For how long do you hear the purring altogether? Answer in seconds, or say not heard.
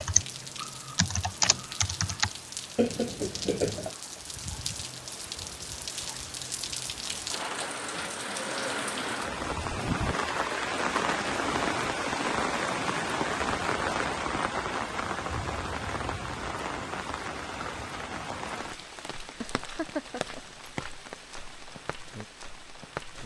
not heard.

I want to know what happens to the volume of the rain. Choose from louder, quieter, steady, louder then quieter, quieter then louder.
louder then quieter.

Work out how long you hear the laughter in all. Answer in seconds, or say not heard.
2 s.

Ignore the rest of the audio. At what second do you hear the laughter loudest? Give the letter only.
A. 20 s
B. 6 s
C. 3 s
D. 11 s
C.